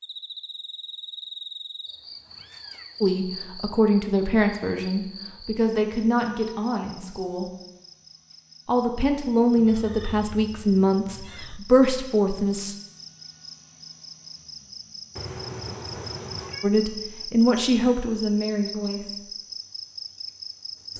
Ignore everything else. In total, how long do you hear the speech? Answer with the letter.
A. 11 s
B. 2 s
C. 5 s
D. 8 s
A.